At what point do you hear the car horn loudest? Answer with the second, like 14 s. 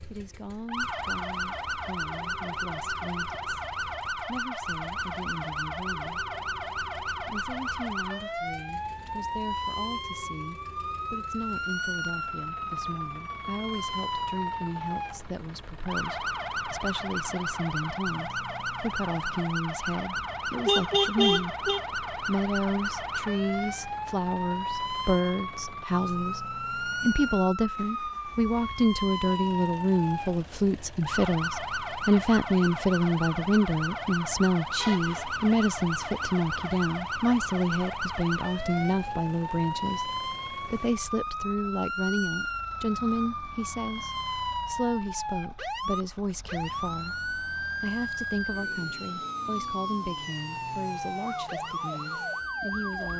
21 s.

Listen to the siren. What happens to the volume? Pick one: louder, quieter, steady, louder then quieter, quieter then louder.
steady.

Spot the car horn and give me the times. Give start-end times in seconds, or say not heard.
20.1-21.8, 34.8-35.4.